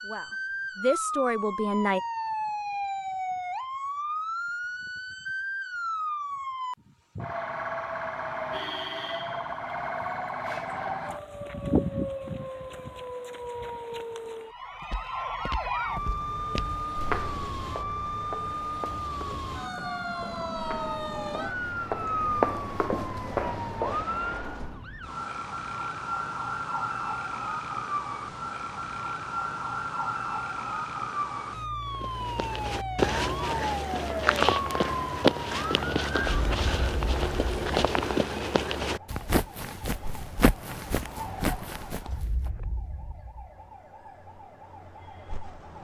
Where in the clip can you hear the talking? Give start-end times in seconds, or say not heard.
0.0-2.0.